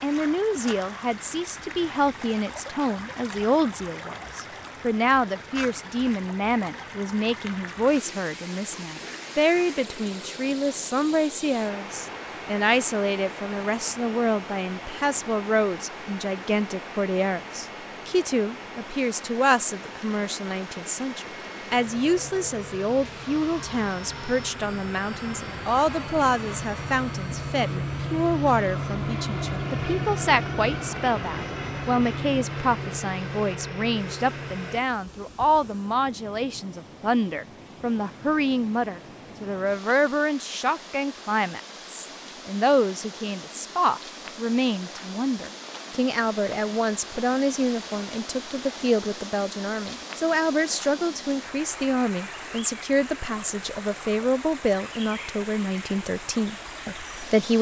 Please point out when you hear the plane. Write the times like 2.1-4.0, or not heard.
11.7-34.9.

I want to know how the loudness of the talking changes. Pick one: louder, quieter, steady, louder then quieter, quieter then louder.
steady.